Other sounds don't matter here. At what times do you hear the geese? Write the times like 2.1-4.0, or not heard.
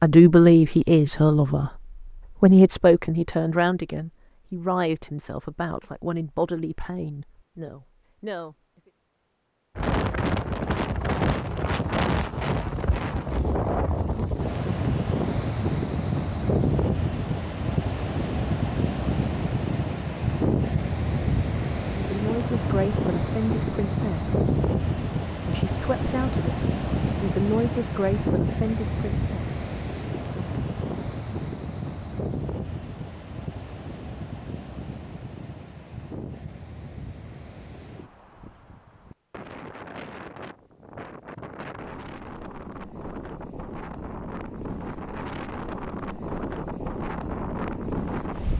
not heard.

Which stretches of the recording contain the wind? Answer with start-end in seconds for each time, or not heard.
9.8-48.5.